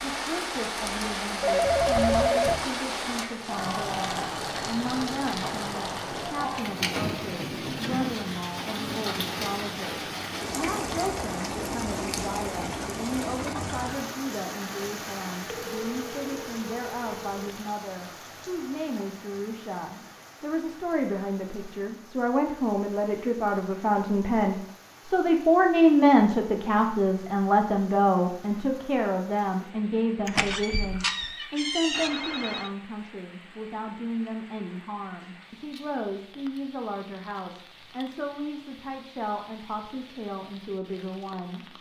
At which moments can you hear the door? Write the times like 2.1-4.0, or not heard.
30.2-32.1.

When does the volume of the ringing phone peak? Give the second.
2 s.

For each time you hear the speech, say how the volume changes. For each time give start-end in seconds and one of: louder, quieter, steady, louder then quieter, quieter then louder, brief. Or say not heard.
0.0-41.7 louder then quieter.